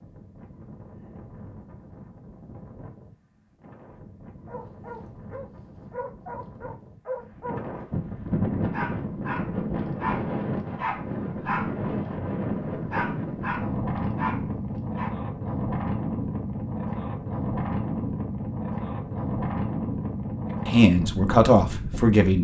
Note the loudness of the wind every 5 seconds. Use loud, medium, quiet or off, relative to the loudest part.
quiet, loud, loud, loud, loud.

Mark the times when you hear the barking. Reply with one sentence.
You can hear the barking from 4.5 to 7.6 s and from 8.6 to 15.1 s.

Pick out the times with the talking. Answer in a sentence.
You can hear the talking from 20.6 to 22.3 s.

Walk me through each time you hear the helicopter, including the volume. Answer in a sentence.
The helicopter can't be heard in this clip.